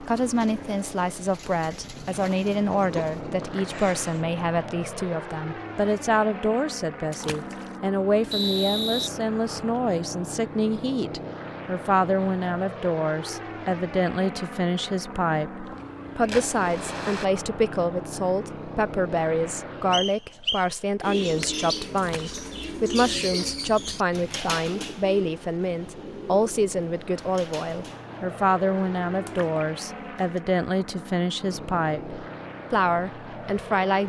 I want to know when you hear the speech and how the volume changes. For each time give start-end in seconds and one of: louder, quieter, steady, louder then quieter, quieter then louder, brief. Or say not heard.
0.0-34.0 steady.